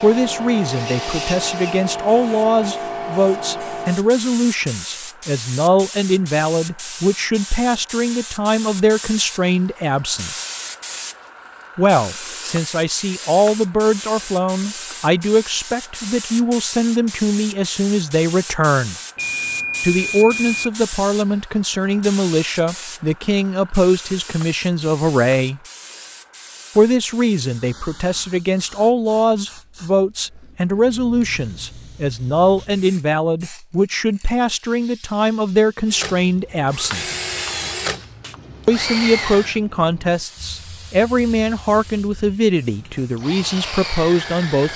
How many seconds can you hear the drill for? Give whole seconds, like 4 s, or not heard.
8 s.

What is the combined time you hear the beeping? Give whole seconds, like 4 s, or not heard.
3 s.